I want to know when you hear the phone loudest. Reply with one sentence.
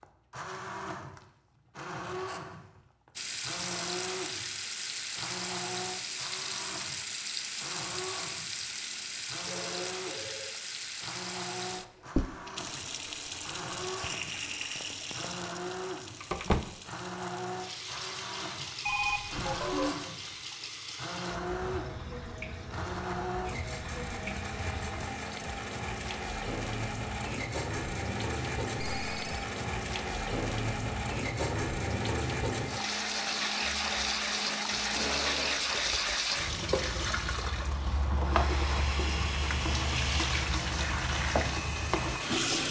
The volume of the phone peaks at 19 seconds.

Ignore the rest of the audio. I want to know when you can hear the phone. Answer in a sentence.
You can hear the phone from 9.6 to 10.8 s, from 18.9 to 19.9 s and from 28.8 to 29.4 s.